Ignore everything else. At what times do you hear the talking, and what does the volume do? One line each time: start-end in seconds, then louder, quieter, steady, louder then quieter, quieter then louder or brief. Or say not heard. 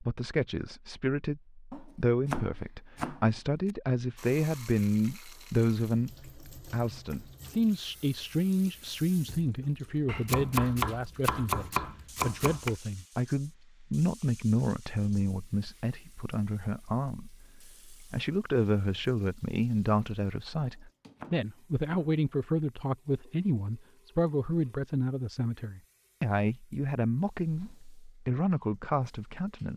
0.0-29.7 steady.